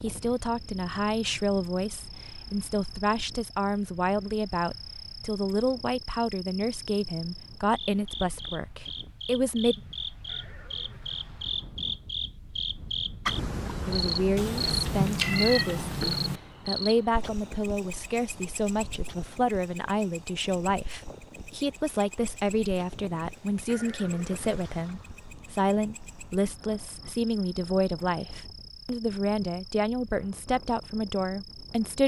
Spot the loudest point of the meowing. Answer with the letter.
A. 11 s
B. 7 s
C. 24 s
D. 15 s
D.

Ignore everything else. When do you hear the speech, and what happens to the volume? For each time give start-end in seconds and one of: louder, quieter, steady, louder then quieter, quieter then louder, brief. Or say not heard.
0.0-9.8 steady
13.7-32.0 steady.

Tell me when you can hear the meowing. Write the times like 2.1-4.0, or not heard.
14.3-16.4.